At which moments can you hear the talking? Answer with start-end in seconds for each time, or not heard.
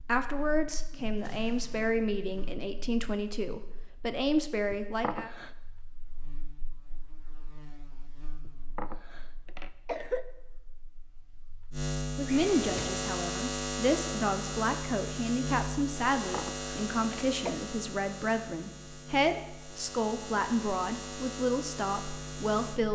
0.0-5.3, 12.2-22.9.